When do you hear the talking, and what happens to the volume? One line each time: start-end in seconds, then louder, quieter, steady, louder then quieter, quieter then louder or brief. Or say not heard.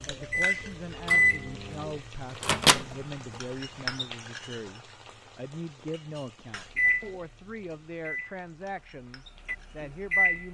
0.1-10.4 steady.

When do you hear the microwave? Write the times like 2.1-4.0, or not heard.
0.0-3.4, 6.8-10.4.